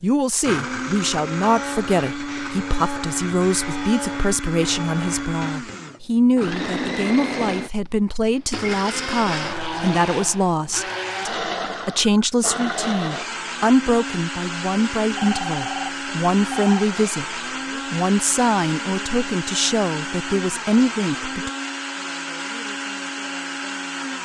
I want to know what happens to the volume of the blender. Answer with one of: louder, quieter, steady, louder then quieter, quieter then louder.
steady.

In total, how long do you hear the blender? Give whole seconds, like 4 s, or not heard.
24 s.